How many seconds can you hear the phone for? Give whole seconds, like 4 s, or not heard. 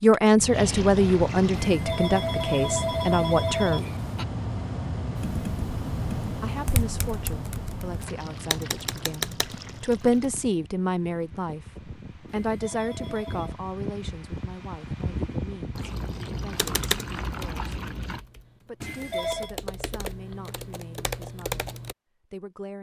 5 s.